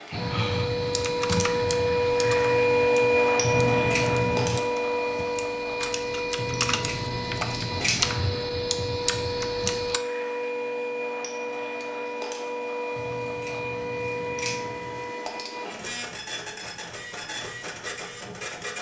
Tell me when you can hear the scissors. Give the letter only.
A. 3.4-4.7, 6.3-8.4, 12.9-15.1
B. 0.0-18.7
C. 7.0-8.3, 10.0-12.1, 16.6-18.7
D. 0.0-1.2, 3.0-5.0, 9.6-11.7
A.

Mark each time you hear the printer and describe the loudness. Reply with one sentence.
The printer can be heard from 0.0 to 18.7 s, getting quieter.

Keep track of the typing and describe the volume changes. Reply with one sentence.
The loudness of the typing goes down, then up.